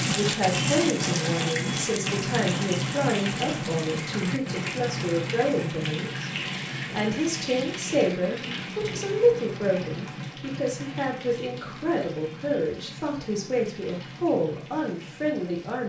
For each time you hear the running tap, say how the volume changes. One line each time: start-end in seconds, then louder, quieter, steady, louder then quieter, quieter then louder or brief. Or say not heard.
0.0-15.8 quieter.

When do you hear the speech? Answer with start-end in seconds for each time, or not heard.
0.0-15.8.